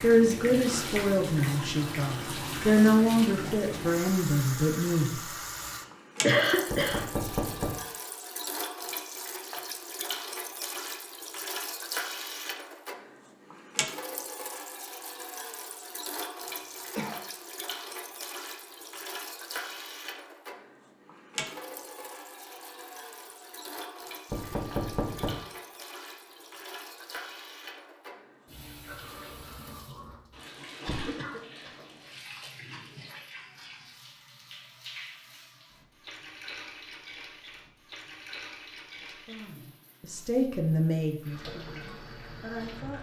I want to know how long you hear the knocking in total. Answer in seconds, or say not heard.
2 s.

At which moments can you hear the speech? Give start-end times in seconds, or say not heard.
0.0-5.2, 39.0-42.9.